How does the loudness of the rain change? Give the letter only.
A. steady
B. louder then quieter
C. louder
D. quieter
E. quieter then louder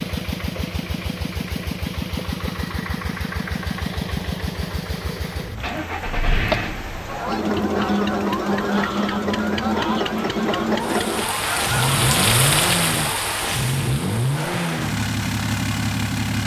B.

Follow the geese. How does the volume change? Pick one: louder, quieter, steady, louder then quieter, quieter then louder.
steady.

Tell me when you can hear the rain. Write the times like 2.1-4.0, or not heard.
5.5-16.4.